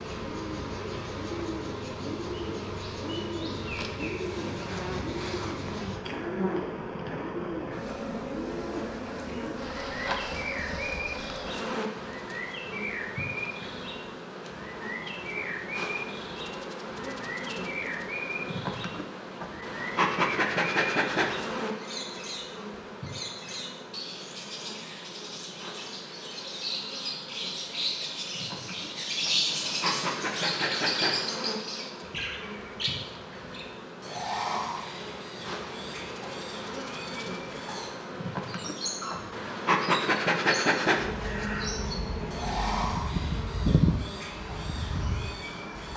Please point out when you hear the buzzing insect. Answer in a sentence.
You can hear the buzzing insect from 0.0 to 45.9 s.